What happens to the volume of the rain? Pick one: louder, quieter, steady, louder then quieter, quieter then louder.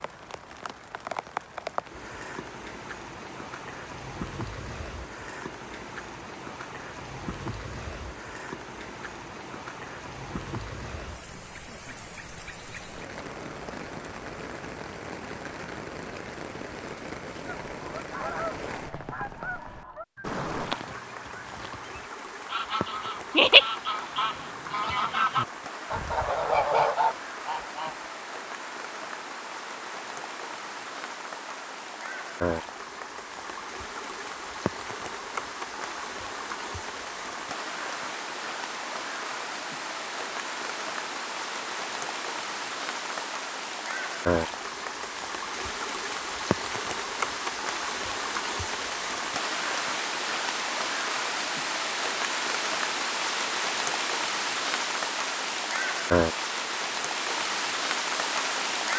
louder.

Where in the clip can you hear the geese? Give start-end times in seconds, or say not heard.
17.4-27.9.